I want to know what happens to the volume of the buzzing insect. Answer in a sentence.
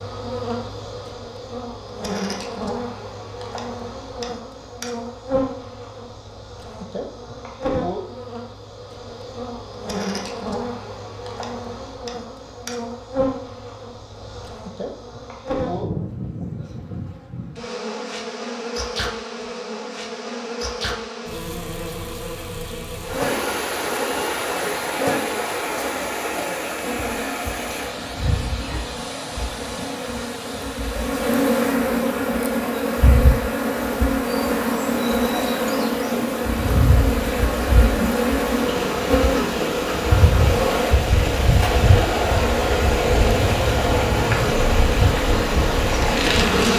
The loudness of the buzzing insect goes up.